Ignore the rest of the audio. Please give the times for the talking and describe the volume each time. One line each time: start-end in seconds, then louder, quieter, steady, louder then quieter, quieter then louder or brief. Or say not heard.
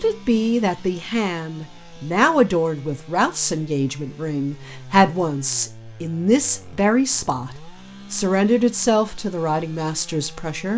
0.0-10.7 steady.